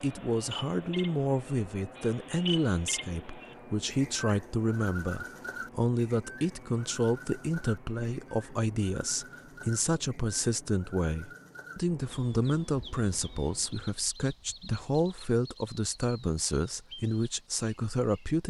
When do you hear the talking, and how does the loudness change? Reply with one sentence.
You can hear the talking from 0.0 to 18.4 s, at a steady volume.